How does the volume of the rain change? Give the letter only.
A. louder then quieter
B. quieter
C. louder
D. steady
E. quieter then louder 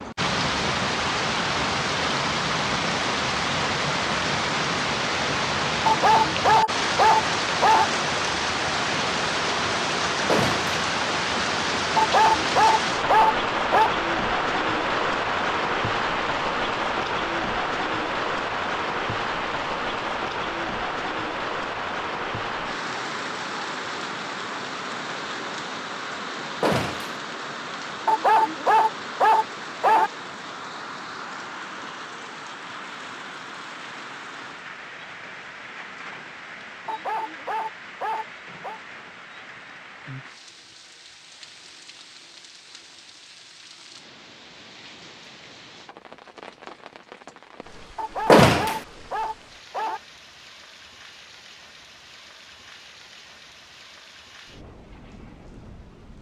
B.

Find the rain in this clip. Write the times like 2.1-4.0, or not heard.
0.0-56.1.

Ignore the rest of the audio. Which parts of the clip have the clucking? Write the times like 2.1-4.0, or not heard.
not heard.